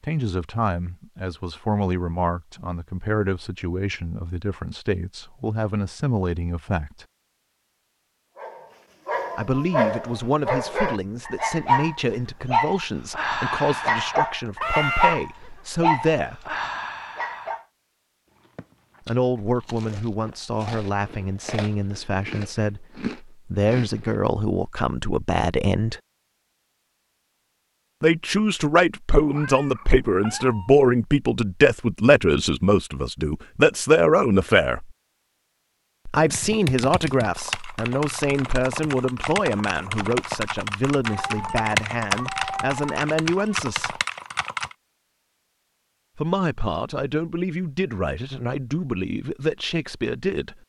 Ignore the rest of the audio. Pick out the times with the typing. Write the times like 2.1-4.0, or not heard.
36.2-44.8.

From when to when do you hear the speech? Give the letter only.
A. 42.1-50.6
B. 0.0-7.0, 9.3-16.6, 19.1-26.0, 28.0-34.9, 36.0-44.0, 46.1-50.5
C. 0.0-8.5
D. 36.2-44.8
B.